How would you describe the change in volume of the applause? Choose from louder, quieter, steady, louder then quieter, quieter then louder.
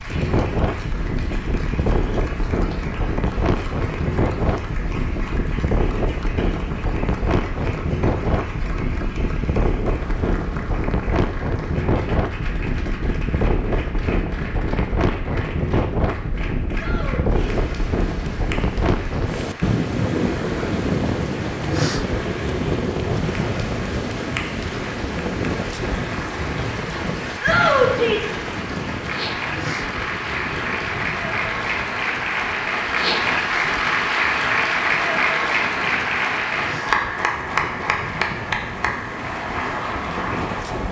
louder.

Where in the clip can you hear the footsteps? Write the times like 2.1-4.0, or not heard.
not heard.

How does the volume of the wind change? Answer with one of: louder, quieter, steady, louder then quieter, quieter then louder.
quieter.